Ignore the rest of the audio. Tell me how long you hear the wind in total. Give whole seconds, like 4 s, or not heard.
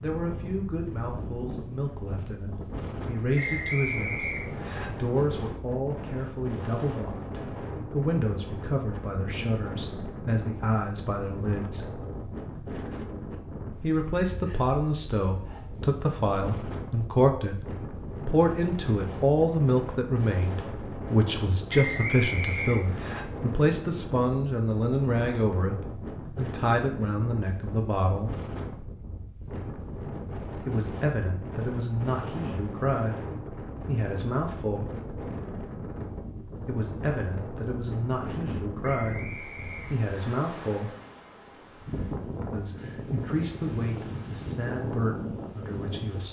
46 s.